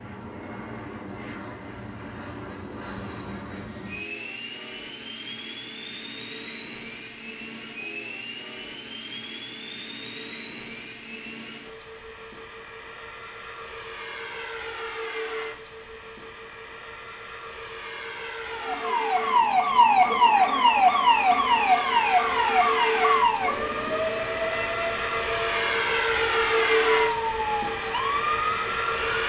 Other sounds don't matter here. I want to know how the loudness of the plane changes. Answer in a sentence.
The loudness of the plane goes up.